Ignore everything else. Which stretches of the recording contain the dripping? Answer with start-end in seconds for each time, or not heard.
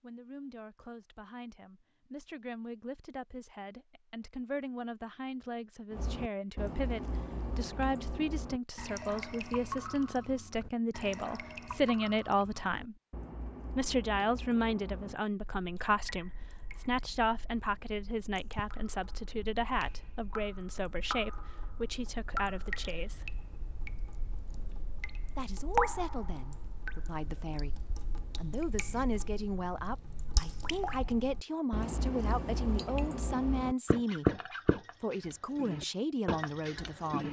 5.9-37.2.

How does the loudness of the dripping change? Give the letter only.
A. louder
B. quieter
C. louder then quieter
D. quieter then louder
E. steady
D.